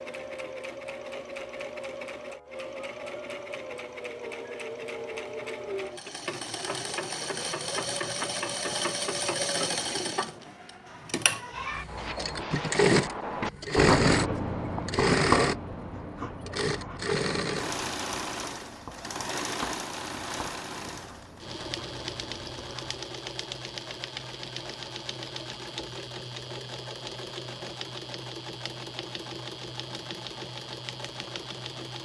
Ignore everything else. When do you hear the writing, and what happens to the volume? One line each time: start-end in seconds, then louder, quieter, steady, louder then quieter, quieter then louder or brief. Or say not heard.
11.8-23.1 quieter.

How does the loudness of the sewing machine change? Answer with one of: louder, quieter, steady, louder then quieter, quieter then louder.
louder then quieter.